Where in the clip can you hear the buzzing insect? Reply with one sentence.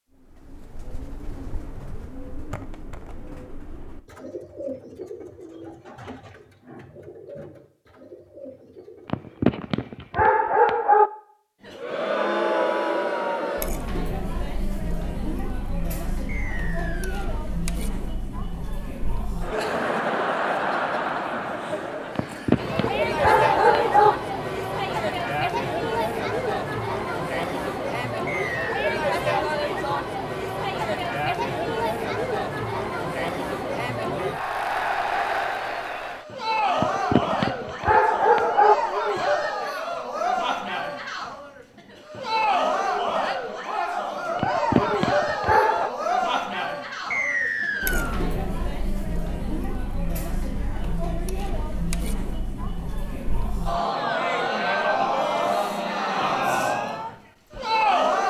You can't hear the buzzing insect here.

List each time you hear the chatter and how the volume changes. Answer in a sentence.
You can hear the chatter from 11.7 to 58.2 s, at a steady volume.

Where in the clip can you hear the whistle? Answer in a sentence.
You can hear the whistle from 16.2 to 17.3 s, from 28.2 to 28.9 s and from 47.1 to 48.2 s.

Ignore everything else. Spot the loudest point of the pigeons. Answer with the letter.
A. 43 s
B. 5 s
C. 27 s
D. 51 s
B.